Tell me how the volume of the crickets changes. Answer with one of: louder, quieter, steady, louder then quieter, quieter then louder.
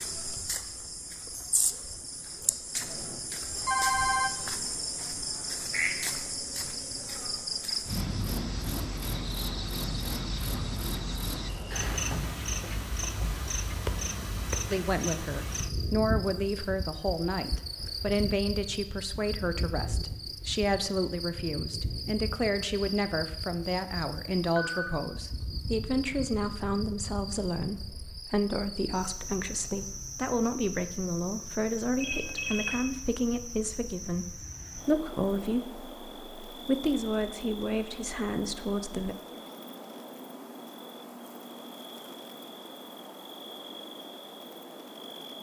quieter.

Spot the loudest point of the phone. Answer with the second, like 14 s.
4 s.